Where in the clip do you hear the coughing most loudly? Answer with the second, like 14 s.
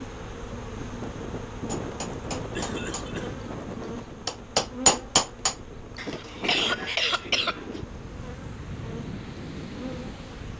7 s.